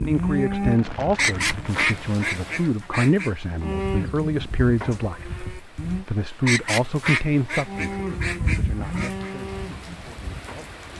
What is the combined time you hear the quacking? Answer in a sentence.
The quacking can be heard for 5 seconds in total.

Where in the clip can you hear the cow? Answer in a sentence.
You can hear the cow from 0.0 to 1.8 s, from 3.6 to 6.0 s and from 7.7 to 10.9 s.